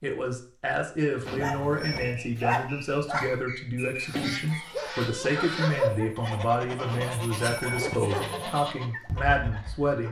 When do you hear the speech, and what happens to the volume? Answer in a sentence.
The speech can be heard from 0.0 to 10.0 s, at a steady volume.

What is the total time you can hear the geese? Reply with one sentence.
The geese can be heard for 6 seconds in total.